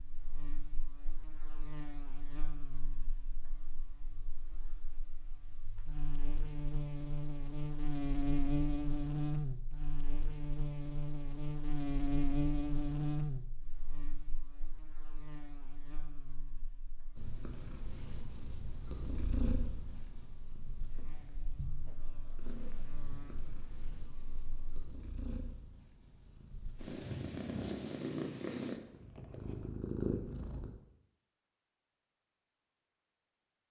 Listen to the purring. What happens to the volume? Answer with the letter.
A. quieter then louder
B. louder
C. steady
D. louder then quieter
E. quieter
A.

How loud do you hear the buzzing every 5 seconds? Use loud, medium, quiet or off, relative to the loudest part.
quiet, loud, loud, quiet, quiet, off, off.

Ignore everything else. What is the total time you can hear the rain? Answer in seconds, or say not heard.
not heard.